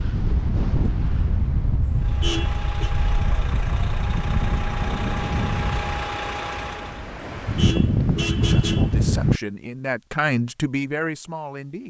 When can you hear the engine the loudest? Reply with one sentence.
The volume of the engine peaks at 6 seconds.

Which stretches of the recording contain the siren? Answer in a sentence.
The siren can't be heard in this clip.